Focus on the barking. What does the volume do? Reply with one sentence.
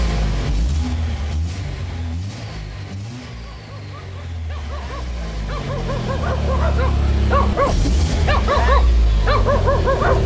The volume of the barking goes up.